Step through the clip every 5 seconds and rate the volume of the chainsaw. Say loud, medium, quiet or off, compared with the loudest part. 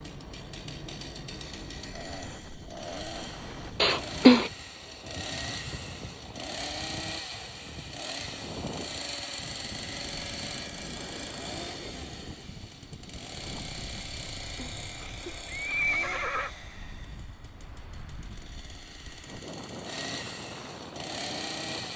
medium, loud, loud, medium, loud.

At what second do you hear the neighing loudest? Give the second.
4 s.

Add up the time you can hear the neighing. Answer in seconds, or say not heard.
3 s.